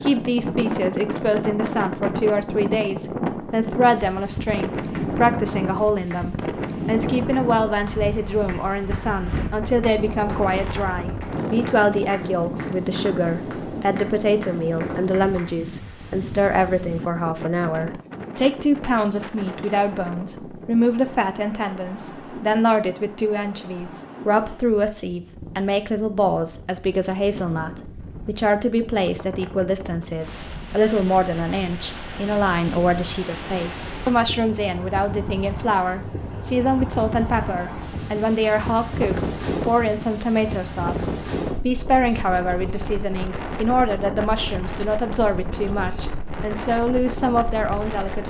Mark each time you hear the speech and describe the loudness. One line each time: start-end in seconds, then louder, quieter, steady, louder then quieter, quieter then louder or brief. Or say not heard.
0.0-48.2 steady.